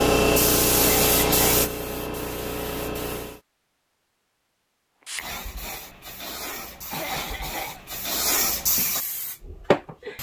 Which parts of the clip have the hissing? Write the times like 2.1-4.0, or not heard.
0.0-3.4, 5.0-10.1.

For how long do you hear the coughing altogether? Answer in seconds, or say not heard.
2 s.